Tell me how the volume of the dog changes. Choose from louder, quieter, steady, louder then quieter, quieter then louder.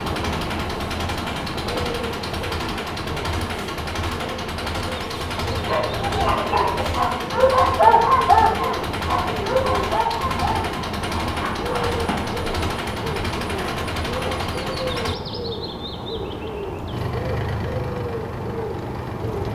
louder then quieter.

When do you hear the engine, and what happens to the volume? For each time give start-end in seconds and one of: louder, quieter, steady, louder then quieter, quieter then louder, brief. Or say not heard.
0.0-15.2 steady
16.9-19.5 brief.